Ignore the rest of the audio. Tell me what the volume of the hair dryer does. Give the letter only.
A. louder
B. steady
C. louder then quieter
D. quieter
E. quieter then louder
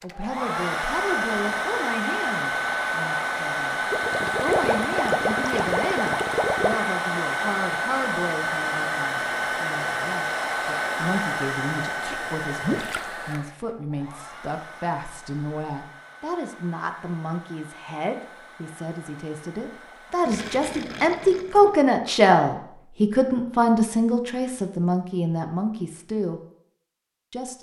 D.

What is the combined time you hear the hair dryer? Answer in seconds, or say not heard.
20 s.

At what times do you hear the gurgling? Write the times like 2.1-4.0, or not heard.
3.9-6.8, 12.6-13.1, 20.2-21.8.